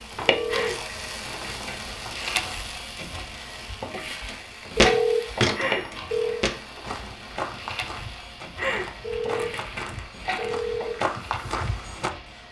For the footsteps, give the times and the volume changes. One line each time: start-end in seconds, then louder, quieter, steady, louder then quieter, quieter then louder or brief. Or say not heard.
4.2-12.4 quieter then louder.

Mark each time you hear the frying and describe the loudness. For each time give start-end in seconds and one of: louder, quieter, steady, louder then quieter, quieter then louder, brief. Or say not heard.
0.0-12.4 quieter.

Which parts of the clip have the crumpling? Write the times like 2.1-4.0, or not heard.
0.5-2.5, 5.5-6.3, 8.6-10.5.